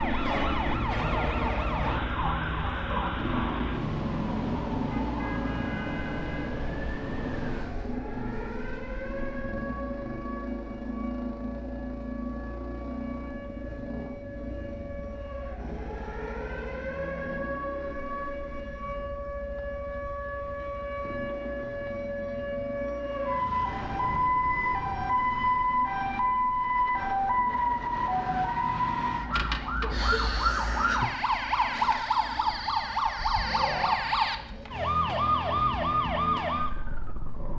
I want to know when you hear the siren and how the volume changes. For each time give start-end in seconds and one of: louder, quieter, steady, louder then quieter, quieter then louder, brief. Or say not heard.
0.0-37.5 quieter then louder.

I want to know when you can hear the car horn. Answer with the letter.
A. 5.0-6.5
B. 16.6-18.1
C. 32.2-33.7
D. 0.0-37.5
A.